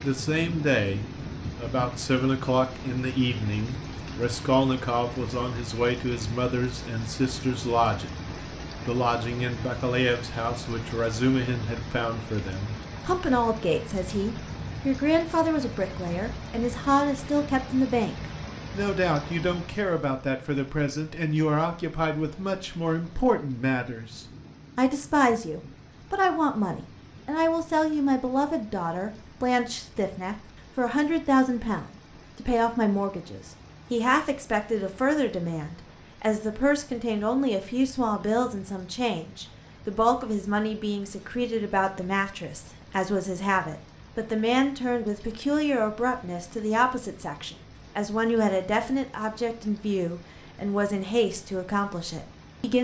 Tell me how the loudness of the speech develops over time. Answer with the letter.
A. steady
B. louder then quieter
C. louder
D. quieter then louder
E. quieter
A.